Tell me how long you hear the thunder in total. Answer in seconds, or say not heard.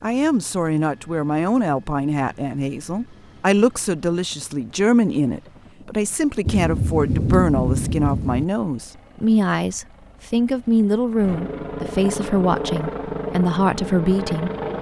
2 s.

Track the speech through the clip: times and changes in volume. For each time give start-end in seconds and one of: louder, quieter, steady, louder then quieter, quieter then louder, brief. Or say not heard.
0.0-14.5 steady.